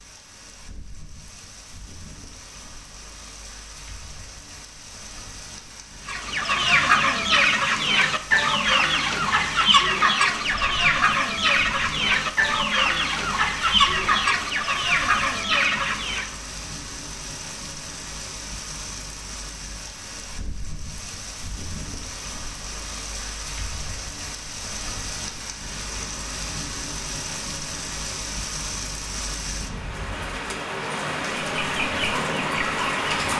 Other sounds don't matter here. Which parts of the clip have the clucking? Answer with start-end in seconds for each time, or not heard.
6.0-16.4, 31.5-33.3.